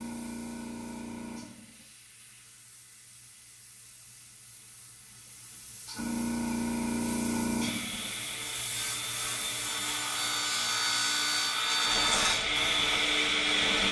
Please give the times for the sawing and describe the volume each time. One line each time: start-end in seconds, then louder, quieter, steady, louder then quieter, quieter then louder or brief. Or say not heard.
7.6-13.8 louder.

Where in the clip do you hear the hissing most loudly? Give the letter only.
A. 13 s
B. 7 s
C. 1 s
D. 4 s
B.